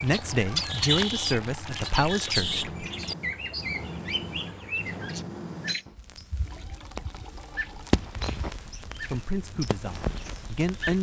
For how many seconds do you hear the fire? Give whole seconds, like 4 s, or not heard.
11 s.